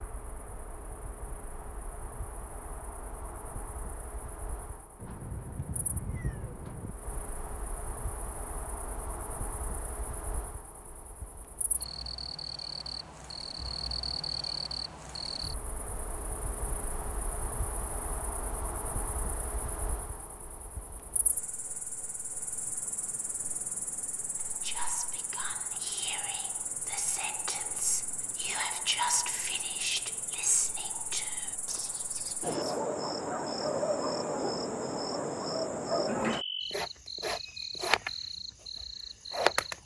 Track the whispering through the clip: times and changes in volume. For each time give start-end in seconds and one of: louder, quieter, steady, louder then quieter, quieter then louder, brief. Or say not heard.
24.4-32.6 louder then quieter.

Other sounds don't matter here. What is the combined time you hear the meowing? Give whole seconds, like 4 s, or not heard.
2 s.